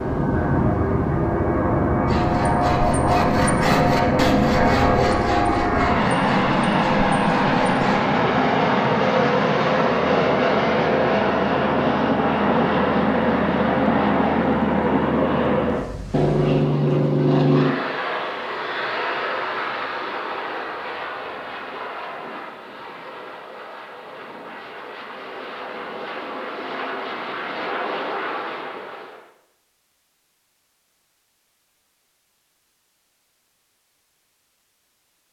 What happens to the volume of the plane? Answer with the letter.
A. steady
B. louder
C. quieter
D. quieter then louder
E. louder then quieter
C.